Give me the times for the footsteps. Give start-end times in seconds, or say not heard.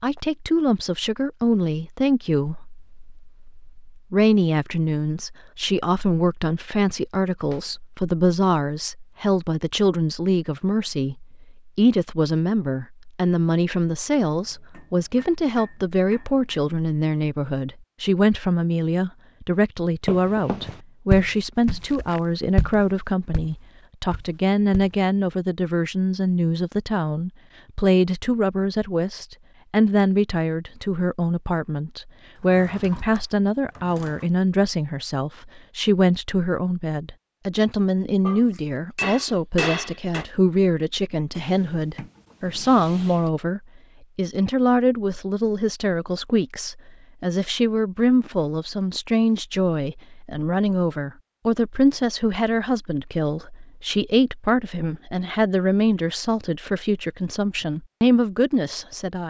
20.1-25.0.